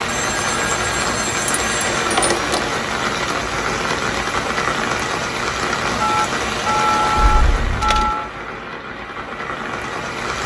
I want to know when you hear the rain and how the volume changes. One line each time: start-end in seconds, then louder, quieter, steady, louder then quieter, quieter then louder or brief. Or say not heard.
0.0-10.4 quieter.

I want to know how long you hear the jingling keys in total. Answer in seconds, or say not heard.
2 s.